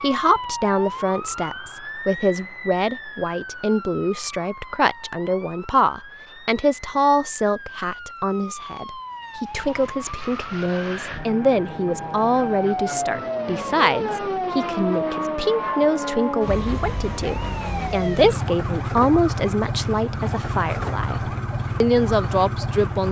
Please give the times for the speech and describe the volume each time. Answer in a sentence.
The speech can be heard from 0.0 to 23.0 s, at a steady volume.